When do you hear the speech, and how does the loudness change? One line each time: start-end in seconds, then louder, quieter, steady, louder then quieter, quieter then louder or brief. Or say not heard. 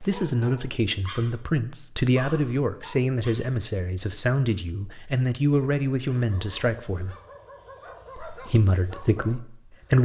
0.0-7.2 steady
8.2-10.0 brief.